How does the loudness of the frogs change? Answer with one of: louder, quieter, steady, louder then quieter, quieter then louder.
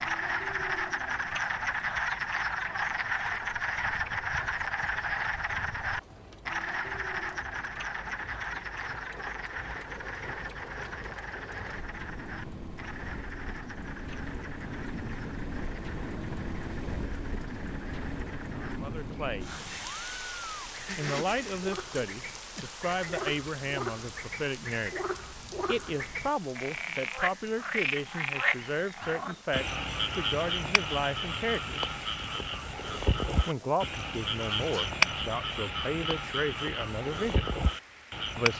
quieter then louder.